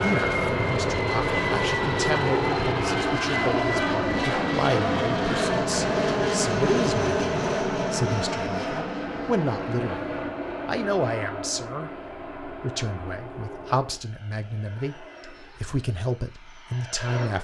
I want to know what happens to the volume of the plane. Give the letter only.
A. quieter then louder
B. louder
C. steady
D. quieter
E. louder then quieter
D.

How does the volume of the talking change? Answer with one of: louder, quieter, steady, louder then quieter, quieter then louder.
steady.